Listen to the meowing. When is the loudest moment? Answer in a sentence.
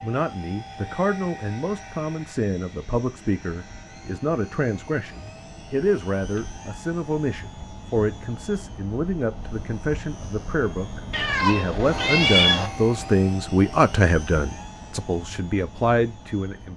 The loudest moment of the meowing is at 12 seconds.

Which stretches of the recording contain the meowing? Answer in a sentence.
The meowing can be heard from 11.1 to 12.7 s.